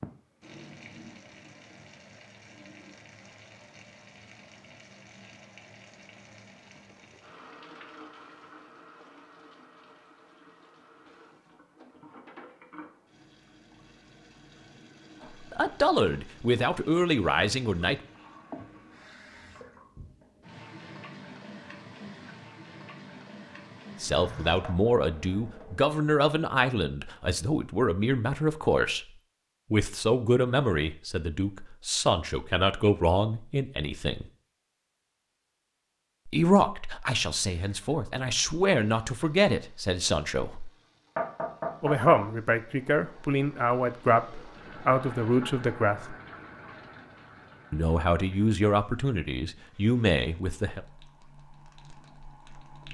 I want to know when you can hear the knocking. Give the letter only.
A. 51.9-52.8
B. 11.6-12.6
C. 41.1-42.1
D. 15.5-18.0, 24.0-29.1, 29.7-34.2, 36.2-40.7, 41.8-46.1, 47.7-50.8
C.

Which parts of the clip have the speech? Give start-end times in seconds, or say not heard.
15.5-18.0, 24.0-29.1, 29.7-34.2, 36.2-40.7, 41.8-46.1, 47.7-50.8.